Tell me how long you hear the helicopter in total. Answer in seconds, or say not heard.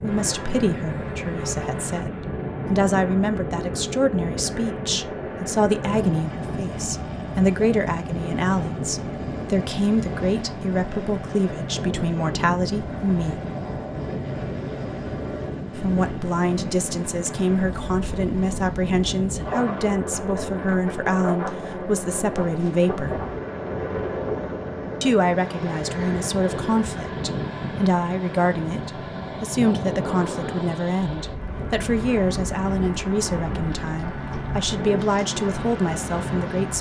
37 s.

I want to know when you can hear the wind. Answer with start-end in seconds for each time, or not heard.
0.0-36.7.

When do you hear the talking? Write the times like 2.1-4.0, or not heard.
0.0-13.4, 15.8-23.2, 25.0-36.7.